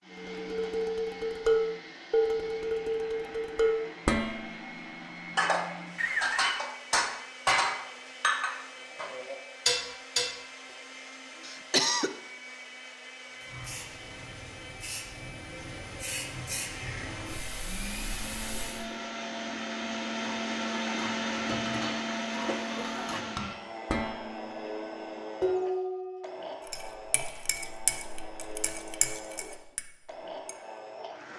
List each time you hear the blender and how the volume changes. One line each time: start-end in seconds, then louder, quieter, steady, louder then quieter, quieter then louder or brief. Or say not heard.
0.0-31.3 louder then quieter.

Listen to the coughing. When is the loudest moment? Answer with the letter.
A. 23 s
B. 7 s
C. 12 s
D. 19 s
C.